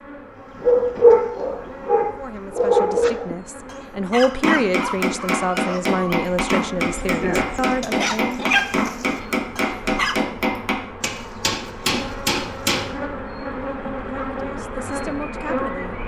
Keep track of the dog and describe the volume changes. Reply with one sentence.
The volume of the dog goes down, then up.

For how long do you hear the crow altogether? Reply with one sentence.
You can't hear the crow here.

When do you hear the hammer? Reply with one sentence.
You can hear the hammer from 4.4 to 12.8 s.